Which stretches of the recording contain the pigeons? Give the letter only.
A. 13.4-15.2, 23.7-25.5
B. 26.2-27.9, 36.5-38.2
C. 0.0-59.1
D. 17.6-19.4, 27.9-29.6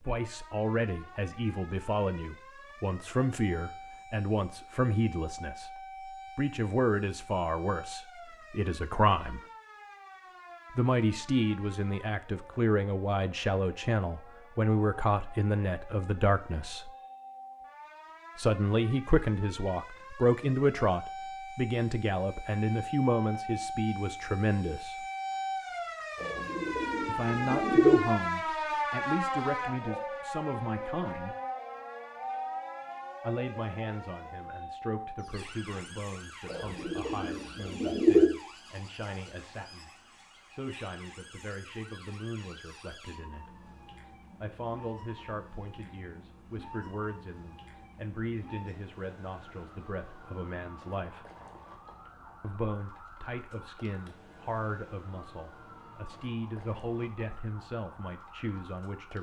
B.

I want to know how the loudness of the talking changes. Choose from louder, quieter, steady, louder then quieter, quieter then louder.
quieter.